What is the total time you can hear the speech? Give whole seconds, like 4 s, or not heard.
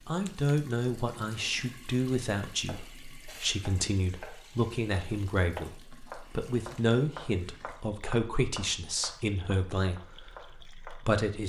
11 s.